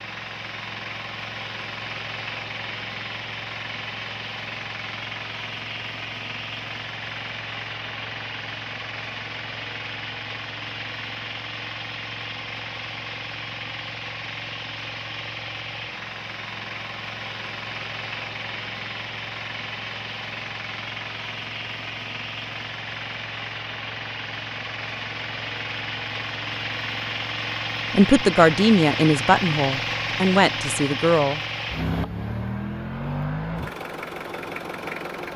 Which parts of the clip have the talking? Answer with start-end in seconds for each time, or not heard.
27.9-31.4.